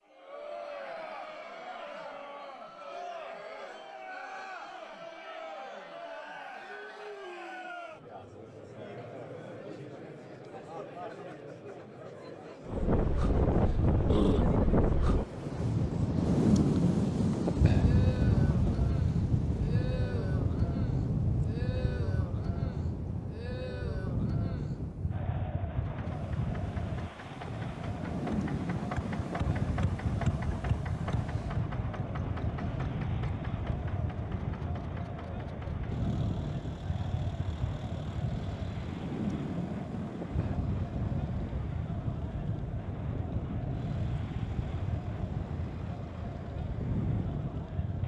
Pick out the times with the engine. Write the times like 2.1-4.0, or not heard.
25.8-48.0.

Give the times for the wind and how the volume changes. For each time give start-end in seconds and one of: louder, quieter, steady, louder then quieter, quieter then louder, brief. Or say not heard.
12.7-48.0 quieter.